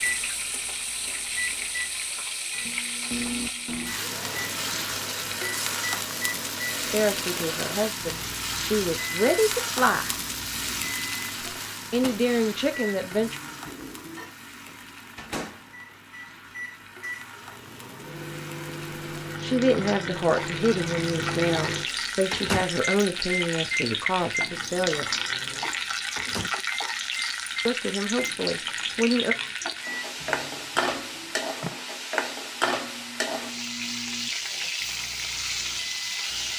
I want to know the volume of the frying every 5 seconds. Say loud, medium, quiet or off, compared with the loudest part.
loud, loud, medium, quiet, loud, loud, loud, loud.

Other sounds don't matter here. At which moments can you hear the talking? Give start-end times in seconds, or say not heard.
6.8-10.2, 11.9-13.3, 19.4-25.1, 27.6-29.4.